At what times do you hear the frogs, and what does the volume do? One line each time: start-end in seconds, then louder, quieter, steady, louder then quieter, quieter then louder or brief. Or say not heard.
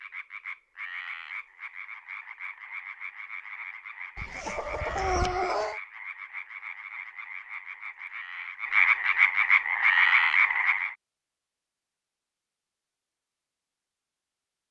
0.0-10.9 louder.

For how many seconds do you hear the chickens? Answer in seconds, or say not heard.
2 s.